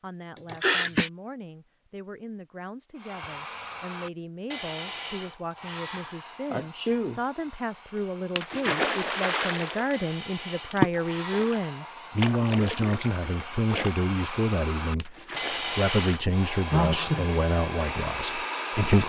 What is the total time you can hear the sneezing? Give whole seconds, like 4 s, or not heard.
2 s.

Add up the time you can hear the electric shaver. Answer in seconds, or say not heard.
not heard.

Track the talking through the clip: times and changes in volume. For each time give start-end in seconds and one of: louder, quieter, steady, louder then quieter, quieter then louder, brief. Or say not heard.
0.0-19.0 louder.